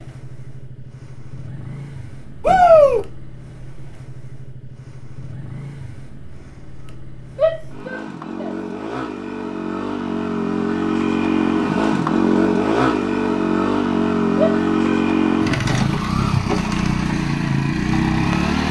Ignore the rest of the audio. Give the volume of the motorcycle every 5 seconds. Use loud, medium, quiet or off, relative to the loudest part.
quiet, quiet, loud, loud.